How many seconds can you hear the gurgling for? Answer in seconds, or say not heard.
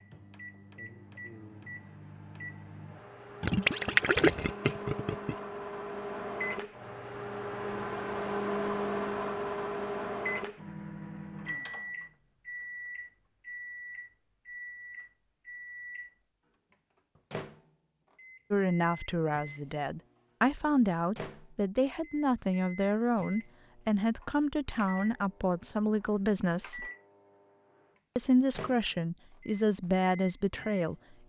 2 s.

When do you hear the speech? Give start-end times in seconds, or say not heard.
18.5-26.9, 28.1-30.9.